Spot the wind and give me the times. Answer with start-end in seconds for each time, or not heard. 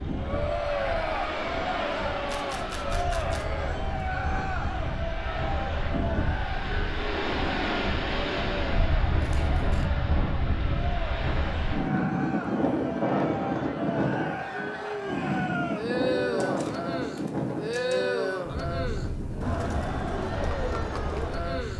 0.0-21.7.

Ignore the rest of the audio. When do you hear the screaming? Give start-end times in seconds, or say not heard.
not heard.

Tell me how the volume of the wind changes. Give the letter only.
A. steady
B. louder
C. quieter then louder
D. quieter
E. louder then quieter
E.